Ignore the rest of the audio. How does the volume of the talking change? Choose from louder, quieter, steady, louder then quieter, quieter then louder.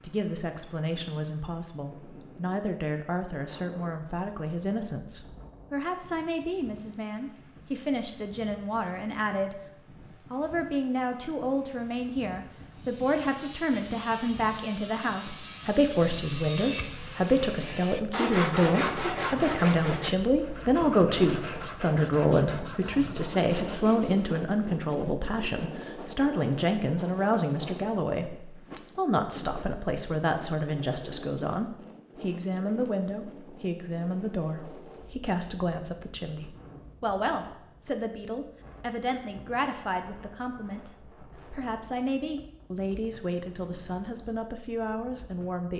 louder then quieter.